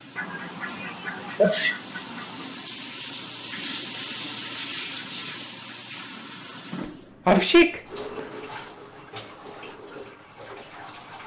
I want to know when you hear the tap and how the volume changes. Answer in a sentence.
You can hear the tap from 0.0 to 11.2 s, getting louder then quieter.